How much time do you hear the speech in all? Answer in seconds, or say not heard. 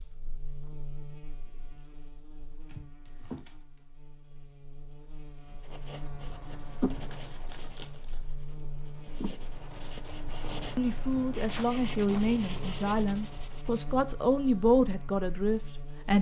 5 s.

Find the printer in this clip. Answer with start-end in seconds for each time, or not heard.
not heard.